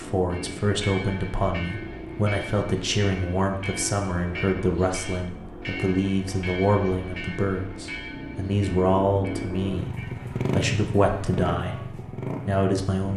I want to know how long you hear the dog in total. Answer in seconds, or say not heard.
not heard.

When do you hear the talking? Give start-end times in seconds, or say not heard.
0.0-13.1.